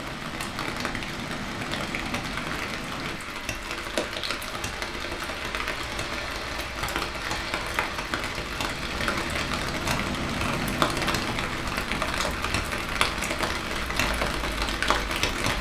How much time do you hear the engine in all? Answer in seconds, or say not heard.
10 s.